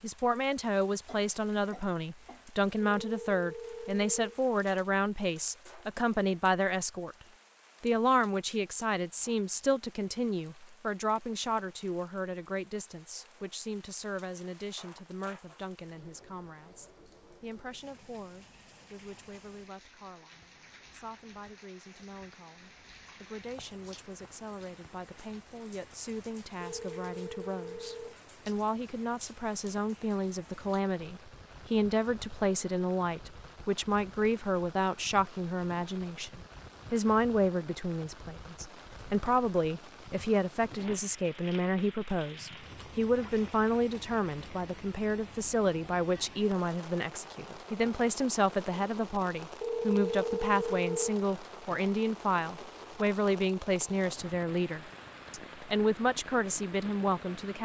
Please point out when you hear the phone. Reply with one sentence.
The phone can be heard from 2.8 to 4.3 s, from 26.6 to 28.2 s and from 49.6 to 51.2 s.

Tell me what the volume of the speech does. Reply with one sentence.
The volume of the speech goes down, then up.